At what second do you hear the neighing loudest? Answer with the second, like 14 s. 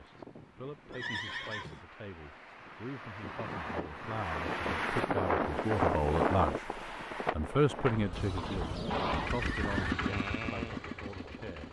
9 s.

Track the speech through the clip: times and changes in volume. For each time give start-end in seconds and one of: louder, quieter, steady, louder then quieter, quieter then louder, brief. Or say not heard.
0.0-11.6 louder then quieter.